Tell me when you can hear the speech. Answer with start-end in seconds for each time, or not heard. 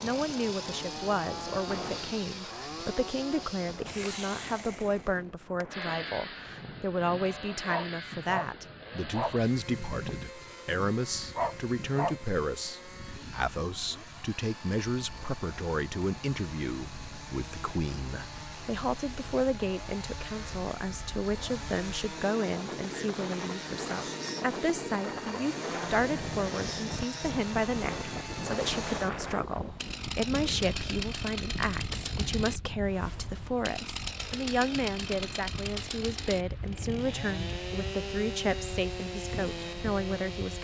0.0-40.5.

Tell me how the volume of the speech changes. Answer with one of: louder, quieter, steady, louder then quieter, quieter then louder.
steady.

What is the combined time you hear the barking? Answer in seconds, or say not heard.
6 s.